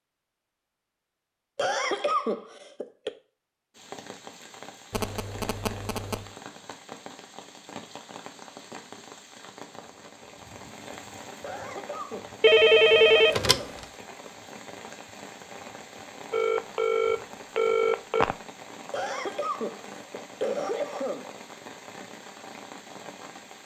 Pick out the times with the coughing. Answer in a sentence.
You can hear the coughing from 1.6 to 3.1 s, from 11.4 to 13.8 s and from 18.9 to 21.4 s.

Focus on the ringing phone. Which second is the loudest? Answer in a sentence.
The loudest moment of the ringing phone is at 13 seconds.